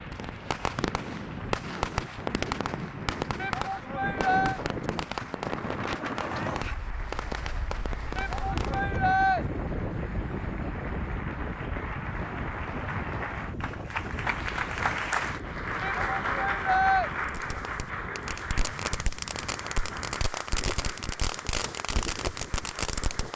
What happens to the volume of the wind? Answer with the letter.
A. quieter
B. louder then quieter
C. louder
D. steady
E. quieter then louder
A.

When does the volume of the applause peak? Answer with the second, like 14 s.
15 s.